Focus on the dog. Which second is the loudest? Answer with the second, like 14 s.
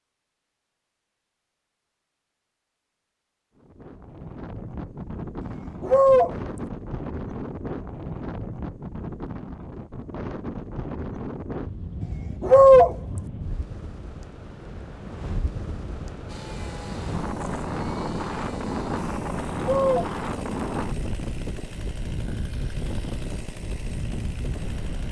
13 s.